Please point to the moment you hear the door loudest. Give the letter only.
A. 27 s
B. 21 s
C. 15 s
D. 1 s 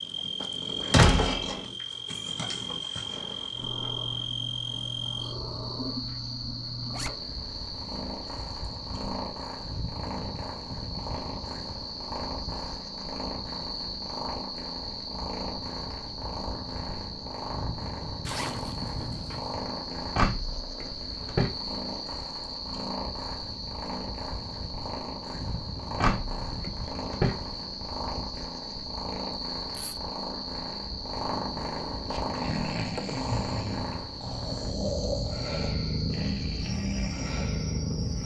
D.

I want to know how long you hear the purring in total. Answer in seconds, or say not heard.
38 s.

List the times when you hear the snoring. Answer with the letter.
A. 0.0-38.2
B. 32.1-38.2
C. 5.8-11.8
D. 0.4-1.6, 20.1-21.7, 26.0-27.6
B.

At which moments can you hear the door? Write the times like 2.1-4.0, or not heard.
0.4-1.6, 20.1-21.7, 26.0-27.6.